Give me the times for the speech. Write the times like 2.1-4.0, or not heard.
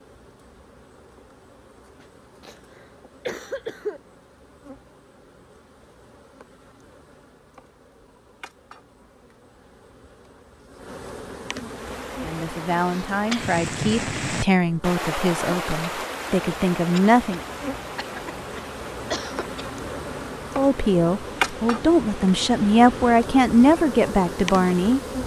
12.2-17.4, 20.6-25.0.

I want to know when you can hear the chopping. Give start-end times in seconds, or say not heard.
not heard.